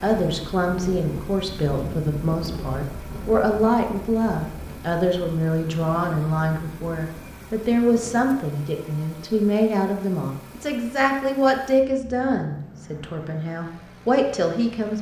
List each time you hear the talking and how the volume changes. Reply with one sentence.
You can hear the talking from 0.0 to 14.9 s, at a steady volume.